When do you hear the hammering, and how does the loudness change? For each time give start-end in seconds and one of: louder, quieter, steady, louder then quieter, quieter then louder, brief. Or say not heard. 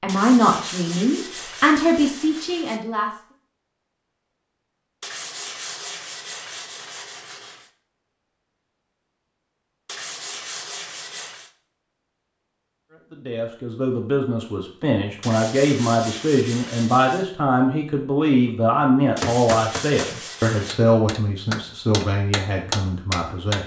19.2-23.6 quieter then louder.